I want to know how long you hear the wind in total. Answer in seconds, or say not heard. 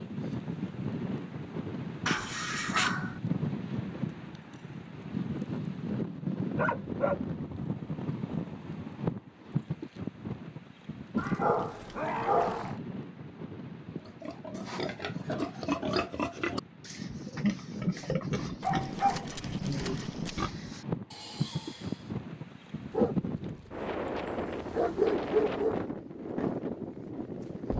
28 s.